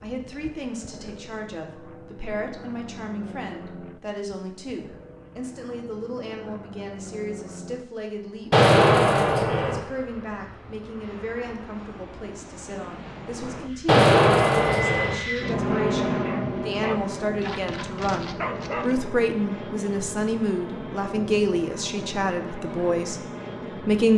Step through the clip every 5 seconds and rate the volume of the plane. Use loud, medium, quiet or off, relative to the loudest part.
quiet, quiet, medium, loud, medium.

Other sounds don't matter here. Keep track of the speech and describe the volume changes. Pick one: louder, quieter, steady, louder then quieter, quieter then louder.
louder.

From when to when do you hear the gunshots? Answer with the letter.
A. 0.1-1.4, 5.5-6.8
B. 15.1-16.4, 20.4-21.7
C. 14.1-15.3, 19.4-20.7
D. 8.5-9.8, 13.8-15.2
D.